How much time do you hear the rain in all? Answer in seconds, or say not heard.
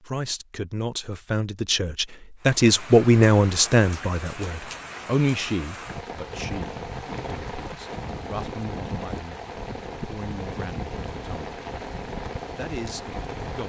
11 s.